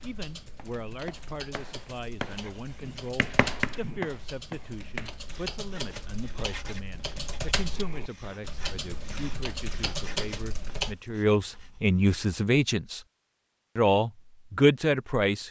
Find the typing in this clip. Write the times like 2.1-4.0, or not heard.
0.0-10.9.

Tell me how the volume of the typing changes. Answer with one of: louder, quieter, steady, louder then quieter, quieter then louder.
louder.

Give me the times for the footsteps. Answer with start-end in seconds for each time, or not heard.
not heard.